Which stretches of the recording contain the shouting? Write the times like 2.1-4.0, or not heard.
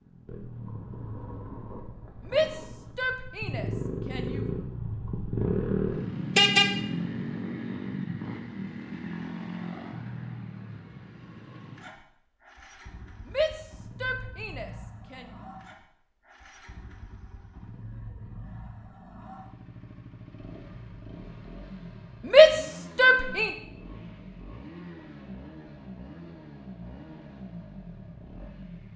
2.2-4.5, 13.2-15.3, 22.2-23.5.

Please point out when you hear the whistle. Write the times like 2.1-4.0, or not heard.
not heard.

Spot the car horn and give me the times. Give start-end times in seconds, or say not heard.
6.3-6.8.